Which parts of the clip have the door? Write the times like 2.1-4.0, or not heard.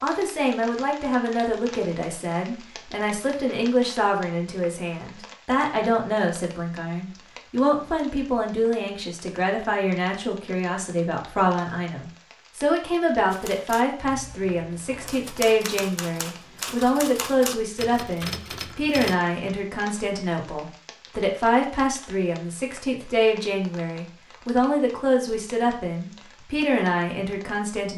not heard.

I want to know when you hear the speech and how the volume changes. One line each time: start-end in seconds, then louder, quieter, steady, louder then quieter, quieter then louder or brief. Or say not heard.
0.0-27.9 steady.